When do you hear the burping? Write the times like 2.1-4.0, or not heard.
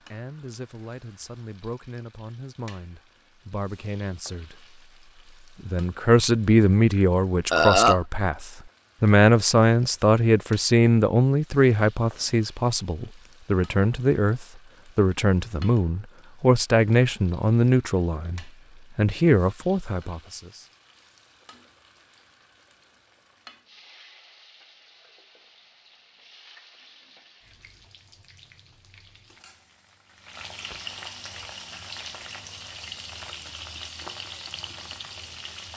7.5-8.0.